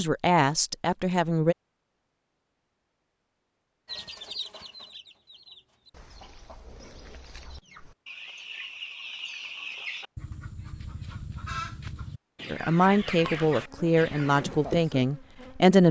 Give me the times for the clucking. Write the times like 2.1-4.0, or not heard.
3.9-14.4.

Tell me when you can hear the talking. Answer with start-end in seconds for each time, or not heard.
0.0-1.6, 12.5-15.8.